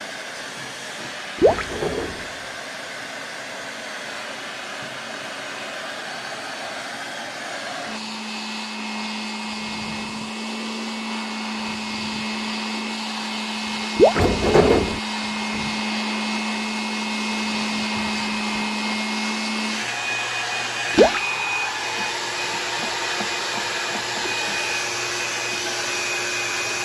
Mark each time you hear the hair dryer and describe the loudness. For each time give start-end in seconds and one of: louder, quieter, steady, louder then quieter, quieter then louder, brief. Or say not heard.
0.0-26.8 louder.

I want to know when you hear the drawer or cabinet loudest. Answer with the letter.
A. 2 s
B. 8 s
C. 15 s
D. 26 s
C.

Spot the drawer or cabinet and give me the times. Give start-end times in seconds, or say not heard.
1.4-2.3, 14.2-15.0.